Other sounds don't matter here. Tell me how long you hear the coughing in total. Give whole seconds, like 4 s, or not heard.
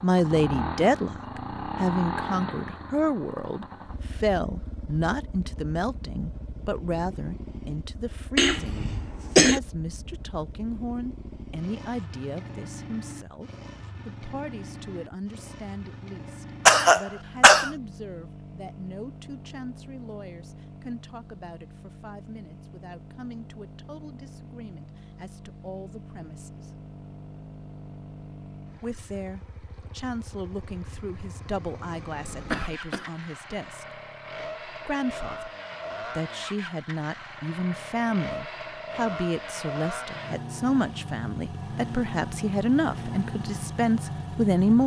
3 s.